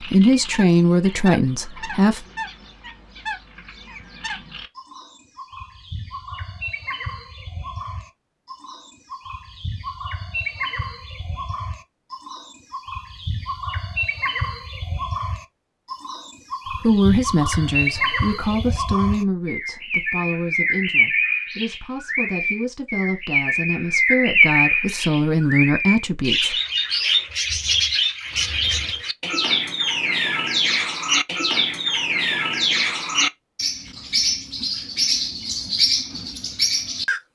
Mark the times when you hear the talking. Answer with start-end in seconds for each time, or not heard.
0.0-2.2, 16.8-26.6.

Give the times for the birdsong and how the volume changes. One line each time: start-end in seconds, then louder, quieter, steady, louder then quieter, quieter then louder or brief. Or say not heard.
0.0-37.2 louder.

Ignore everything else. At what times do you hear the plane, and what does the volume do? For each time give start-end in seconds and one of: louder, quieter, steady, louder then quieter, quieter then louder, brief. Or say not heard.
not heard.